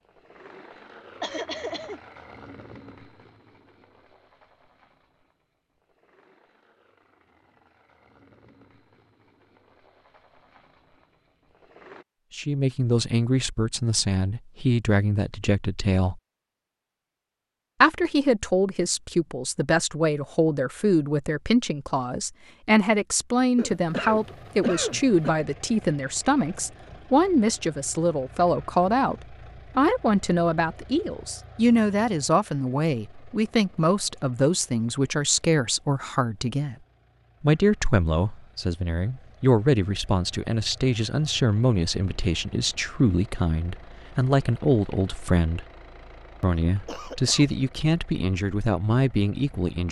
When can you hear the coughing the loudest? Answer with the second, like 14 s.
25 s.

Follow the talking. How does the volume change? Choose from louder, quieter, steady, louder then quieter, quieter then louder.
steady.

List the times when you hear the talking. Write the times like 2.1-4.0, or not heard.
12.3-16.2, 17.8-36.8, 37.4-45.6, 46.4-49.8.